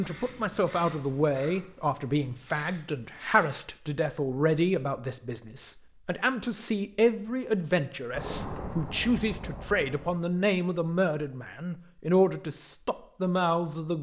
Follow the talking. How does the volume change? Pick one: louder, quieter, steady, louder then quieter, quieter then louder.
steady.